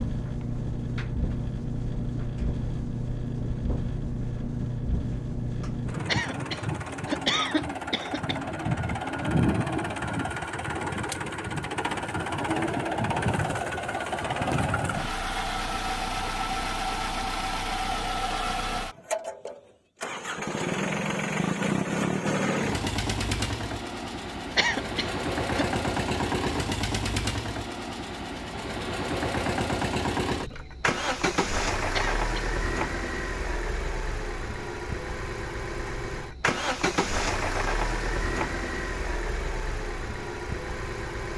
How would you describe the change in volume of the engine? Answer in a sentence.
The loudness of the engine stays about the same.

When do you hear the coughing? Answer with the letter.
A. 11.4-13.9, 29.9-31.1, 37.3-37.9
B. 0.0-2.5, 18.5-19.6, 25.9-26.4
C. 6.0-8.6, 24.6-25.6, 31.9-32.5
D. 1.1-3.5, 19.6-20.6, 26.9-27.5
C.